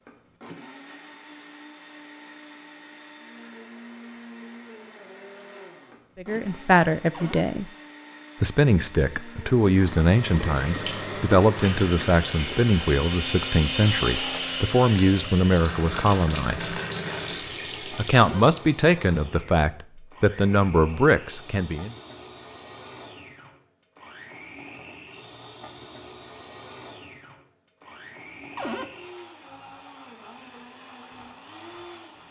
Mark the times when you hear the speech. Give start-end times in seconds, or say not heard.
6.2-7.7, 8.4-16.8, 17.9-21.9.